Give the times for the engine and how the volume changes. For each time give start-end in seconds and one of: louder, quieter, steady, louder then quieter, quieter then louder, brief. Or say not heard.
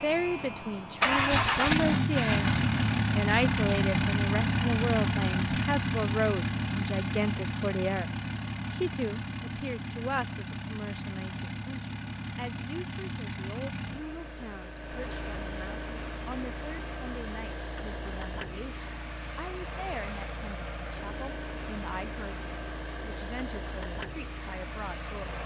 0.0-25.4 quieter.